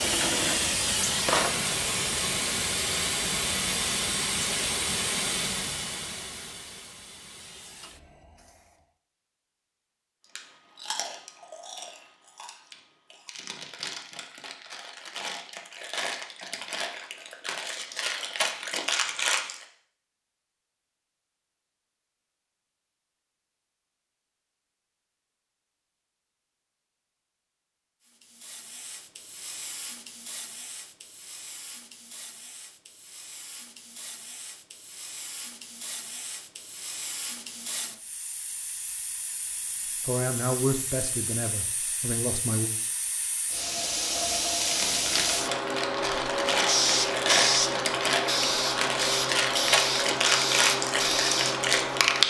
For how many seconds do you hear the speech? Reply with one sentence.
You can hear the speech for 3 seconds altogether.